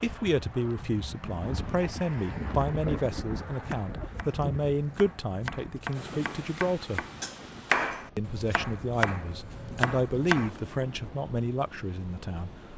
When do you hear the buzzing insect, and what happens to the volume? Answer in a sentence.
You can't hear the buzzing insect here.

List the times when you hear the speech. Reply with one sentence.
The speech can be heard from 0.0 to 7.0 s and from 8.2 to 12.7 s.